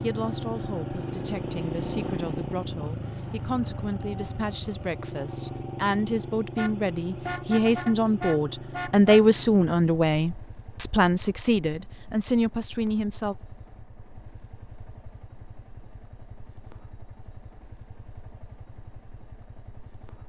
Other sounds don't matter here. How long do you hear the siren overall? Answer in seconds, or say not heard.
not heard.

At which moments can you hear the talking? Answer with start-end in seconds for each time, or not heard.
0.0-13.3.